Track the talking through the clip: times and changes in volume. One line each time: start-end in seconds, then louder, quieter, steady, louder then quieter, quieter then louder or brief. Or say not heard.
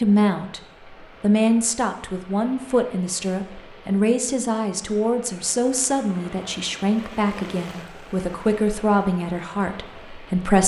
0.0-0.6 brief
1.2-10.6 steady.